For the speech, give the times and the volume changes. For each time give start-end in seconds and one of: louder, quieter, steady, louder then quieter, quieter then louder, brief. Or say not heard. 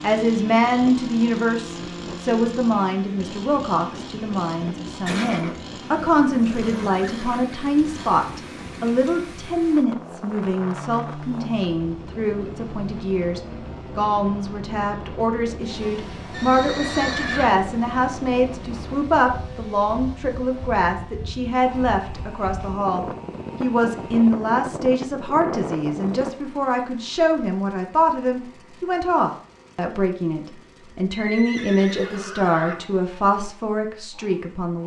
0.0-34.8 steady.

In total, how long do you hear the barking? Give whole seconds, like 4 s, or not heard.
not heard.